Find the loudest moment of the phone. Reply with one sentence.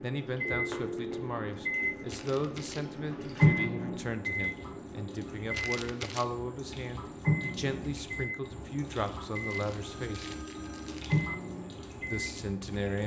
The loudest moment of the phone is at 1 second.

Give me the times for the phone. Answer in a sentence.
The phone can be heard from 0.5 to 1.3 s and from 9.8 to 11.2 s.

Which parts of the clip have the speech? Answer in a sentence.
The speech can be heard from 0.0 to 10.3 s and from 12.1 to 13.0 s.